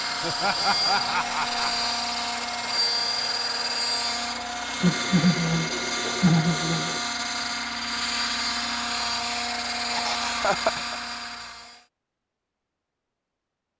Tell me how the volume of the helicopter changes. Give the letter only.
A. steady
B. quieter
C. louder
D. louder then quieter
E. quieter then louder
A.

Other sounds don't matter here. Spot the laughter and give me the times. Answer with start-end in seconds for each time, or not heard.
0.2-1.9, 4.8-7.0, 9.9-10.9.